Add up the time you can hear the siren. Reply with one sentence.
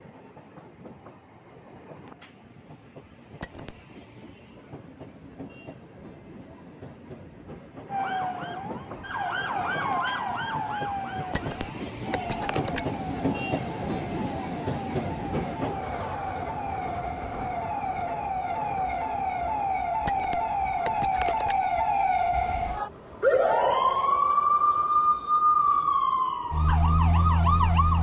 You can hear the siren for 20 seconds altogether.